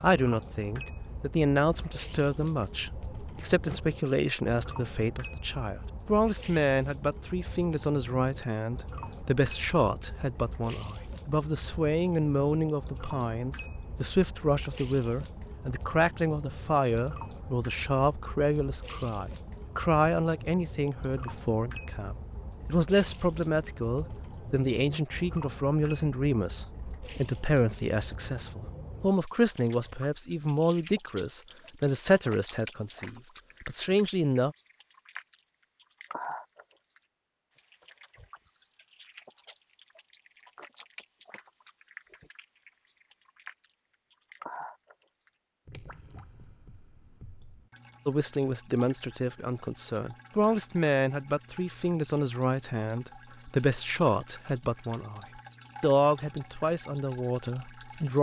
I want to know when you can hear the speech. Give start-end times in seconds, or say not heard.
0.0-34.5, 48.0-58.1.